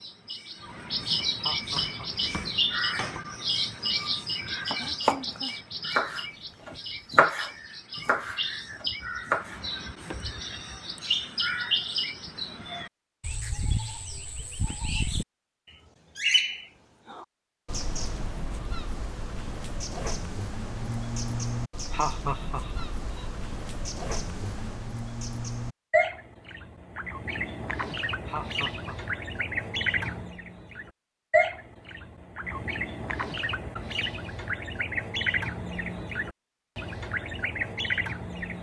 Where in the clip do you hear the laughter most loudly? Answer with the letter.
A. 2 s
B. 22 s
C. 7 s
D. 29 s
B.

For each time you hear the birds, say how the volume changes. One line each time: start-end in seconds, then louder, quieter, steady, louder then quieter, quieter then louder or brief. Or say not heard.
0.0-38.5 steady.